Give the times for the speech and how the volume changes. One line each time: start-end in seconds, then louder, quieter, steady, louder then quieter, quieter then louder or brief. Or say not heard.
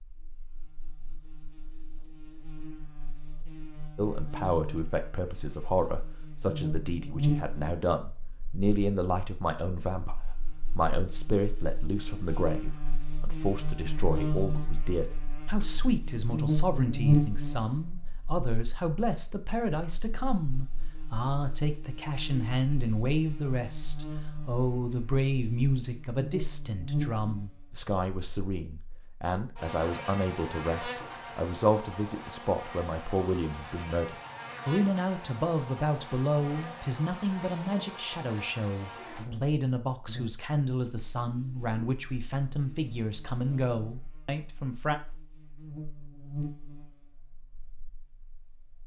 4.0-45.0 steady.